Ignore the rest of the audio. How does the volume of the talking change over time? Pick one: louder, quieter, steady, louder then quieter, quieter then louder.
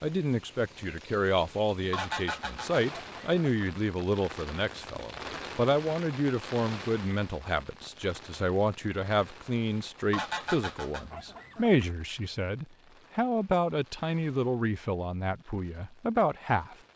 steady.